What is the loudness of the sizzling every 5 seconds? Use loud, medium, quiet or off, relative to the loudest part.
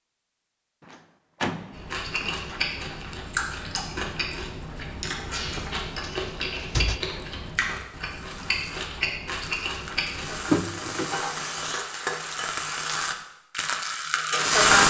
off, quiet, loud.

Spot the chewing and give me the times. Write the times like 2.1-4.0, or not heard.
1.7-10.4.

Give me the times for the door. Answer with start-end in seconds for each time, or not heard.
0.8-2.6, 5.3-7.0, 10.4-11.2.